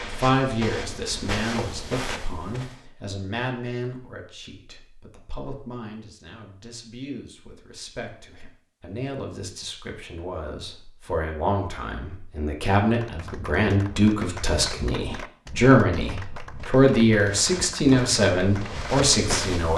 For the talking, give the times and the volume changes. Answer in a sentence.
The talking can be heard from 0.1 to 19.7 s, getting quieter then louder.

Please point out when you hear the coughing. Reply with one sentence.
The coughing can't be heard in this clip.